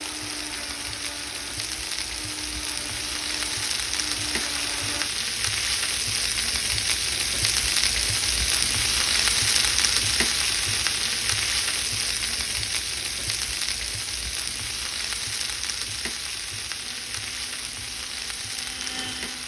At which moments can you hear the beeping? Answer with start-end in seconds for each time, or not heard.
not heard.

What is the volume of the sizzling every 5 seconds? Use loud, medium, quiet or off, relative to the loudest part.
medium, loud, loud, medium.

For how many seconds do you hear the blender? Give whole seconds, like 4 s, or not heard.
8 s.